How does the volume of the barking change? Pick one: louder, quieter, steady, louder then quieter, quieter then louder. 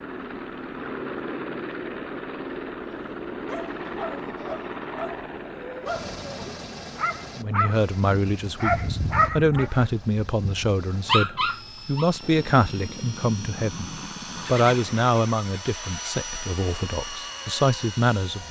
louder.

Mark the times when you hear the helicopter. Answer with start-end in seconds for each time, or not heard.
0.0-18.4.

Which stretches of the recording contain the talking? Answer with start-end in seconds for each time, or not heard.
7.3-18.4.